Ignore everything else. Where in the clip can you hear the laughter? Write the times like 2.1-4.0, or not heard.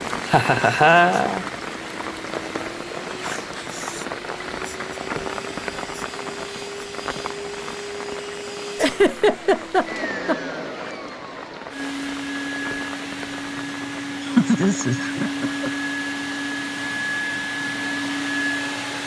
0.3-1.4, 8.8-10.6, 14.2-15.8.